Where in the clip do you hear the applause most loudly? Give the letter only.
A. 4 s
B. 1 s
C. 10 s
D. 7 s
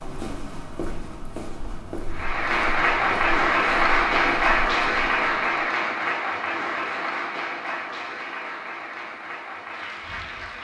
A.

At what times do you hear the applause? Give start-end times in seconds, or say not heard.
2.1-10.6.